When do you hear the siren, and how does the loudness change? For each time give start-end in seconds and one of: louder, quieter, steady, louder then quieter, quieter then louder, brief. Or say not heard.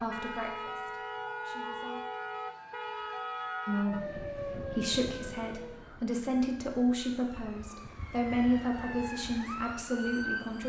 0.0-10.6 quieter then louder.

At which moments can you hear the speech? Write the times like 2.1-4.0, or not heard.
0.0-2.0, 3.6-10.6.